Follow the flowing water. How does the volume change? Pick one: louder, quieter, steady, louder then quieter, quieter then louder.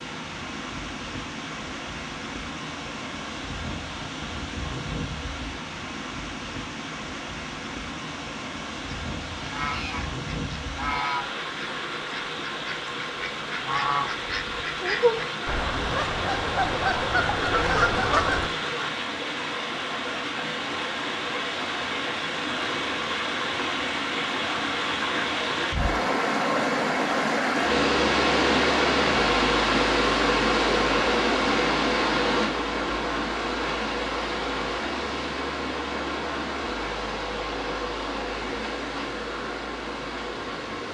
louder then quieter.